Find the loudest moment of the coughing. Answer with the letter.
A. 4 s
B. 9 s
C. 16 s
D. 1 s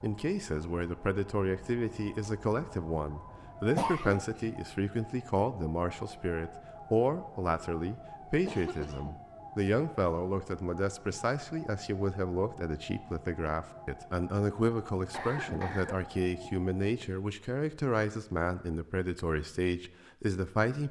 A.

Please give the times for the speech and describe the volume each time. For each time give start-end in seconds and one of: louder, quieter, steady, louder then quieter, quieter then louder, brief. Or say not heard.
0.0-20.8 steady.